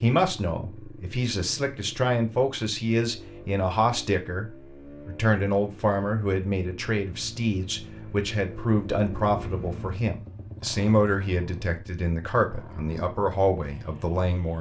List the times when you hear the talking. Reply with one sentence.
The talking can be heard from 0.0 to 14.5 s.